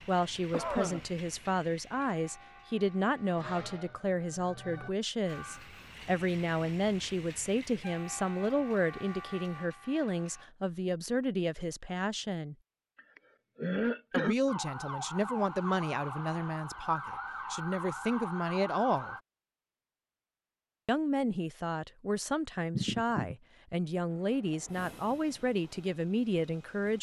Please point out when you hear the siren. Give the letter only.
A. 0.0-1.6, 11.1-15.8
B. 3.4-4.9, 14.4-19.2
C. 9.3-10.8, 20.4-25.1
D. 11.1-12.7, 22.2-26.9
B.